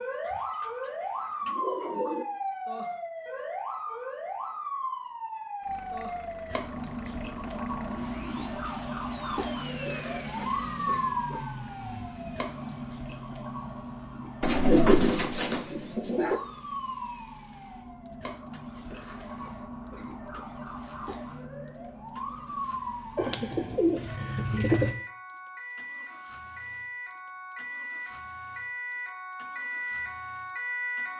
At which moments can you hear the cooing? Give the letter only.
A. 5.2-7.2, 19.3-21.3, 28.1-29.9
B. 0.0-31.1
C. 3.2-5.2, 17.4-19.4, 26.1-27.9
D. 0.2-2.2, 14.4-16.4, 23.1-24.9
D.